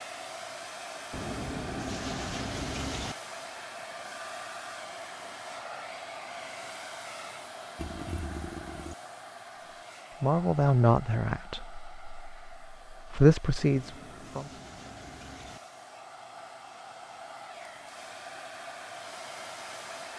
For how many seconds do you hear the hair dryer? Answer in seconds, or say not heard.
20 s.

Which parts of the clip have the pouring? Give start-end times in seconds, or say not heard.
1.1-3.1, 7.8-8.9, 13.6-15.6.